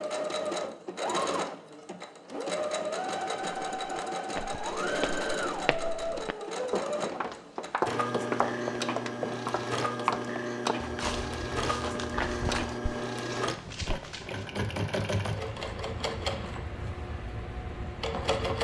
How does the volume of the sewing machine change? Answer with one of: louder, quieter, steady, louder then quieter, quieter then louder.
steady.